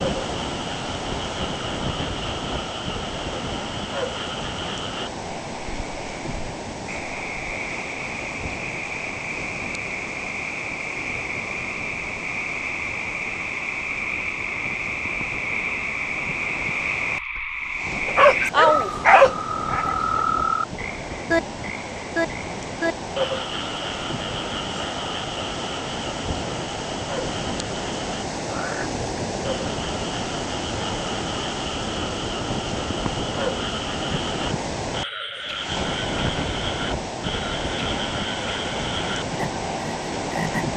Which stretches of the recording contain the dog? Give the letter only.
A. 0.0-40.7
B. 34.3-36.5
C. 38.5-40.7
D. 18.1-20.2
D.